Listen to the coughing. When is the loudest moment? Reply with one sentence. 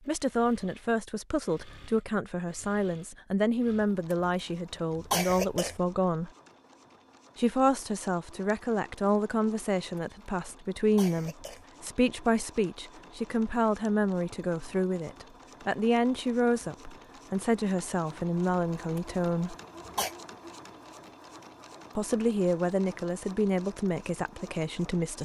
The loudest moment of the coughing is at 5 seconds.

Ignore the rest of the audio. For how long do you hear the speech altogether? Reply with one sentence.
You can hear the speech for 22 seconds altogether.